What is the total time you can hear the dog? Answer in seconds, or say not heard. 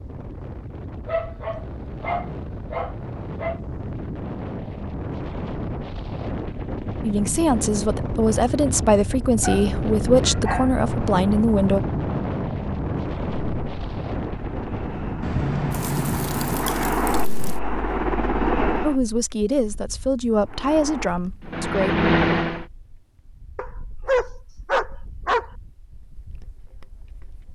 7 s.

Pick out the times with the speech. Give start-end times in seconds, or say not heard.
7.0-11.8, 18.8-21.9.